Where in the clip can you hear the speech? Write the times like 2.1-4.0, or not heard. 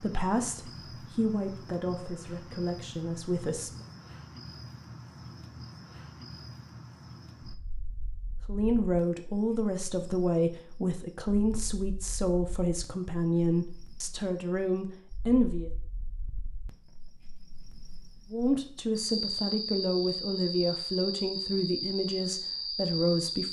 0.0-3.7, 8.4-15.7, 18.3-23.4.